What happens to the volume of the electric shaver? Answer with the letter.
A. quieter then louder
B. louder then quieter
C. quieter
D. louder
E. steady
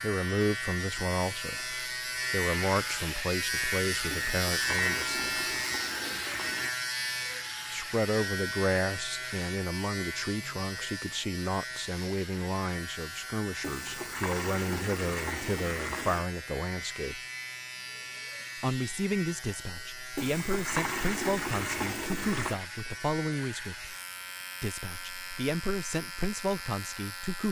C.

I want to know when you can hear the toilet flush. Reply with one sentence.
You can hear the toilet flush from 4.1 to 6.8 s, from 13.6 to 16.2 s and from 20.1 to 22.6 s.